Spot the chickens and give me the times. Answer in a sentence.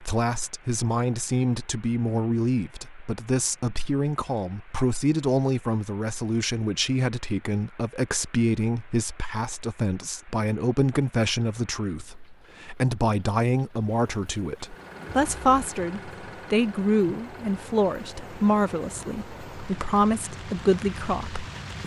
You can't hear the chickens here.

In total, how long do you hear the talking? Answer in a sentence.
The talking can be heard for 22 seconds in total.